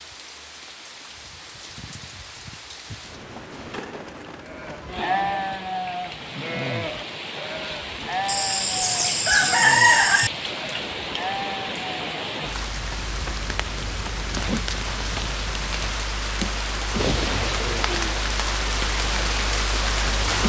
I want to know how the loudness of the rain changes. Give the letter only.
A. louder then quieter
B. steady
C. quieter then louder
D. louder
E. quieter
D.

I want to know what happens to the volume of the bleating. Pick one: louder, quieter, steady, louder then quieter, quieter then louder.
quieter.